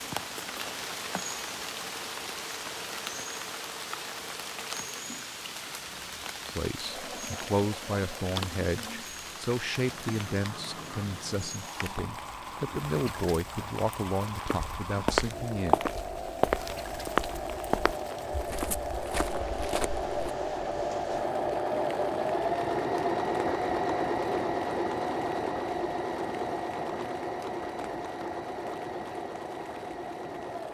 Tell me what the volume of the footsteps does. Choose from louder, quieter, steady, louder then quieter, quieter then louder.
quieter.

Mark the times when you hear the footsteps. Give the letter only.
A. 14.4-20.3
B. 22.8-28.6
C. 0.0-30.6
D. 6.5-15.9
A.